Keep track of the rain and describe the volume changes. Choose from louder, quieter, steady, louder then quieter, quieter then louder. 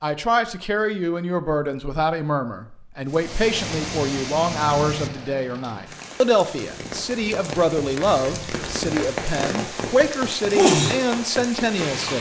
quieter then louder.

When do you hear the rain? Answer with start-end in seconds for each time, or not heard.
3.1-12.1.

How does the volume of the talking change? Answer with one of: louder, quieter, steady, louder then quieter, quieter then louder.
steady.